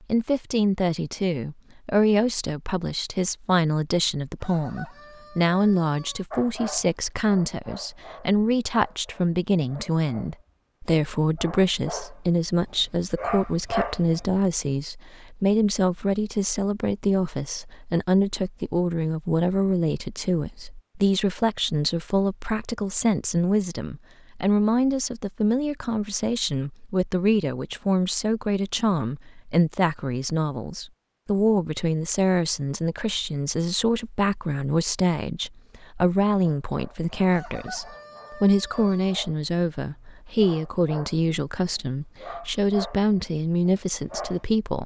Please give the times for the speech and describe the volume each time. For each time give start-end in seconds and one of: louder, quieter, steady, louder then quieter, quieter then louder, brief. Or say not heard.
0.1-44.8 steady.